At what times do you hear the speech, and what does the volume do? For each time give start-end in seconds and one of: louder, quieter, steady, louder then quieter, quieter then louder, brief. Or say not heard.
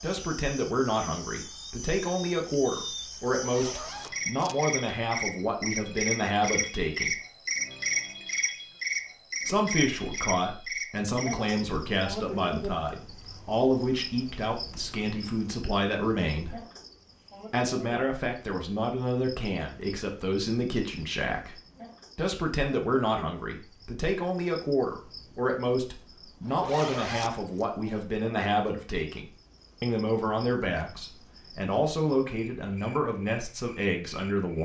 0.0-7.2 steady
9.4-16.6 steady
17.5-21.6 steady
22.1-34.6 steady.